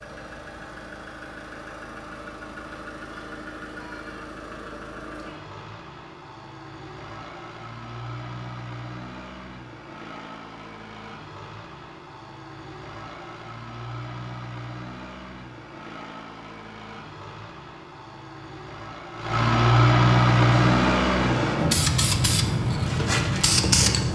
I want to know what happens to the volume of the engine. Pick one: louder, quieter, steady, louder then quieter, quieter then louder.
louder.